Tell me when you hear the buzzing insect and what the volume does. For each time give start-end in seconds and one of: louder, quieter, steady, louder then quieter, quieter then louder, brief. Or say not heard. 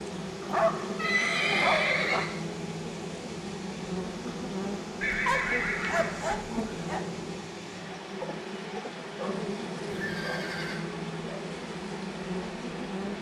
0.0-13.1 steady.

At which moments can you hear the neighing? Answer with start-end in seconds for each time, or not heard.
0.9-2.3, 5.0-6.8, 9.8-10.8.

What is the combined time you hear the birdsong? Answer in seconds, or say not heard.
not heard.